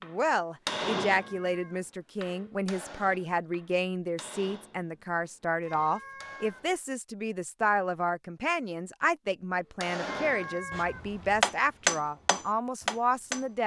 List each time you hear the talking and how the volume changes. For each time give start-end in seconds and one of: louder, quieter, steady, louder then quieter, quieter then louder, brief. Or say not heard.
0.0-13.6 steady.